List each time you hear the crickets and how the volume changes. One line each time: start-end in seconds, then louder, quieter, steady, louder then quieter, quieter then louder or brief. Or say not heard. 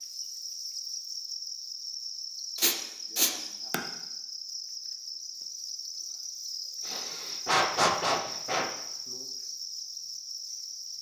0.0-10.9 steady.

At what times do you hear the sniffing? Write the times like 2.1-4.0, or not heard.
2.5-3.8, 6.8-8.7.